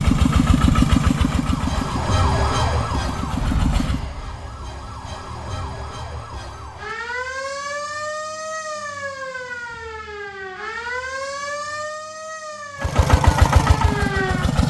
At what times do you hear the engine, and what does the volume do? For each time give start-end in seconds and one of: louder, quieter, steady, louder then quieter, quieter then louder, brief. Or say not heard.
0.0-4.0 quieter then louder
12.8-14.6 brief.